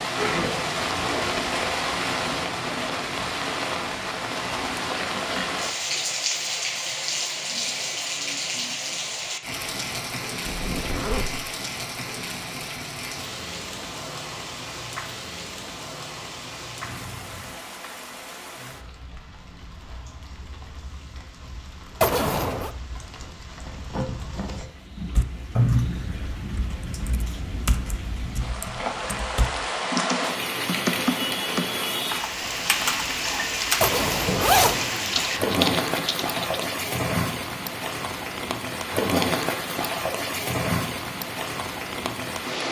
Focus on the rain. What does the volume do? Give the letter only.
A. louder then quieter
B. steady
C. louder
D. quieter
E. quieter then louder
E.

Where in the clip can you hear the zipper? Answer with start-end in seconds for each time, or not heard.
10.4-11.4, 22.0-22.7, 33.8-34.9.